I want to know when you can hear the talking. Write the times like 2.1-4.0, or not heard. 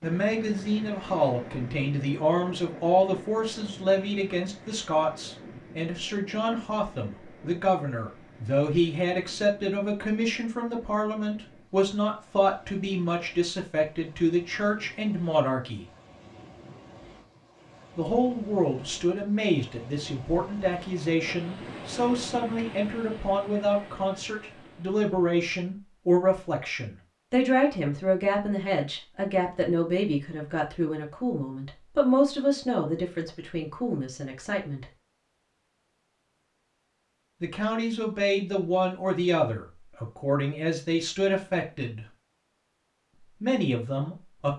0.0-15.8, 17.9-34.9, 37.4-42.0, 43.4-44.5.